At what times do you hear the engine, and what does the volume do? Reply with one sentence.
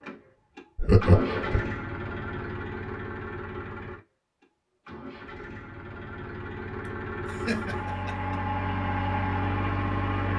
The engine can be heard from 0.0 to 10.3 s, getting quieter then louder.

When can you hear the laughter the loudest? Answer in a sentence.
The volume of the laughter peaks at 1 second.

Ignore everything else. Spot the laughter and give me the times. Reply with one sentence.
The laughter can be heard from 0.8 to 1.7 s and from 6.8 to 8.4 s.